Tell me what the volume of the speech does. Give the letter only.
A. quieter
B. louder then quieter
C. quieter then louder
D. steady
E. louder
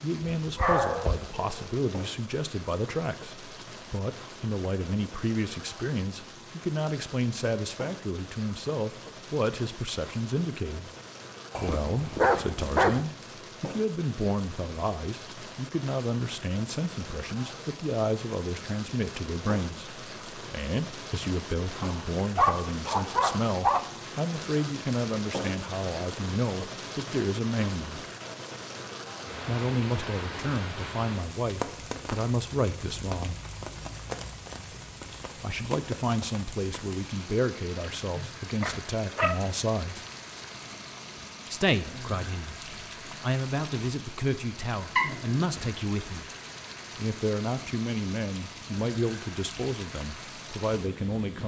D.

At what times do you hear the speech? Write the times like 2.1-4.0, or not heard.
0.0-10.9, 11.6-28.1, 29.4-33.4, 35.4-40.0, 41.5-46.2, 47.0-51.4.